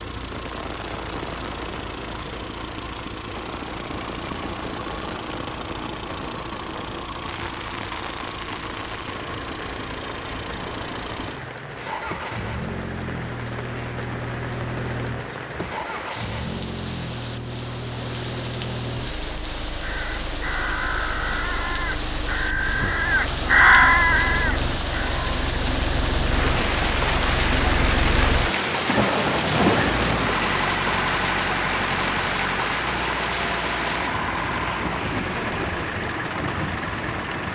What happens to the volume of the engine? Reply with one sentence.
The loudness of the engine goes up.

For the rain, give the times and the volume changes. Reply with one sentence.
The rain can be heard from 0.0 to 37.5 s, getting louder.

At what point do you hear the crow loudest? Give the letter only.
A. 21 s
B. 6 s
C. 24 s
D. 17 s
C.